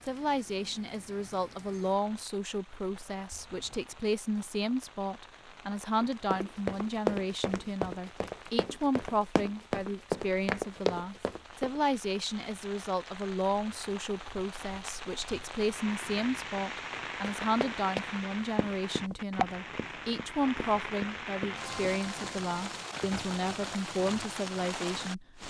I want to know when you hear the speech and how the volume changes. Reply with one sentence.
You can hear the speech from 0.0 to 25.4 s, at a steady volume.